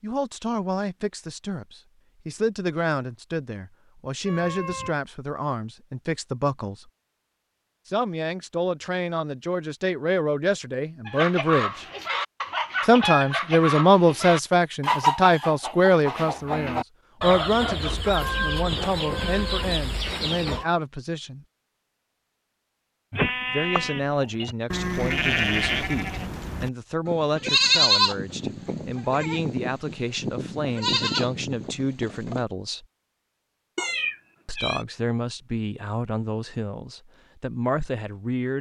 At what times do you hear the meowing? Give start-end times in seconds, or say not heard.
4.2-5.0, 18.1-20.7, 33.8-34.9.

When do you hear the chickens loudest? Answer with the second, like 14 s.
15 s.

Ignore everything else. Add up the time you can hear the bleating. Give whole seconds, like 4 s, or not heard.
9 s.